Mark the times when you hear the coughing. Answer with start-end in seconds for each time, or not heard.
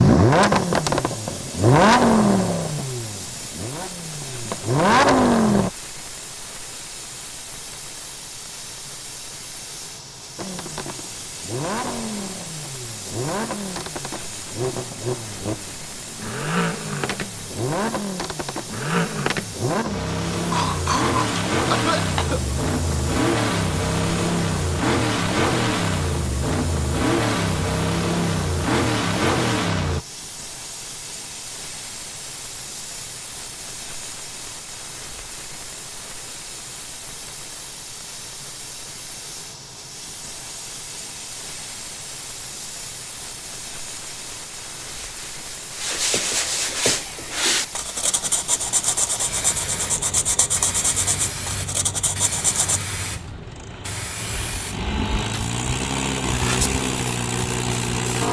20.5-22.4.